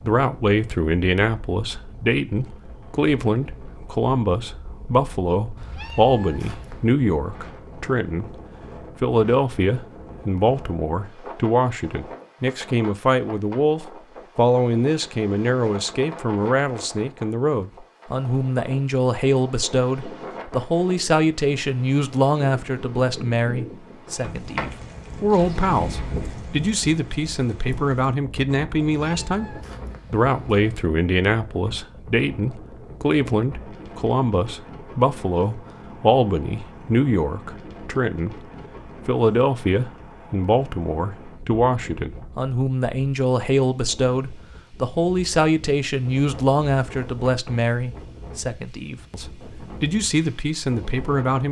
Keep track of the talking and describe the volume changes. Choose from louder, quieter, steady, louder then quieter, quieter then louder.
steady.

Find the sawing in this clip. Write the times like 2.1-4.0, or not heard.
not heard.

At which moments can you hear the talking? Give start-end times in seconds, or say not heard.
0.0-8.2, 9.0-38.4, 39.0-51.4.